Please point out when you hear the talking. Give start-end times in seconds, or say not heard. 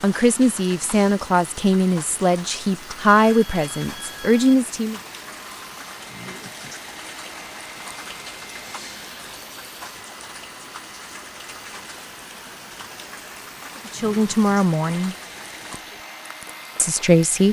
0.0-5.0, 13.8-15.2, 16.8-17.4.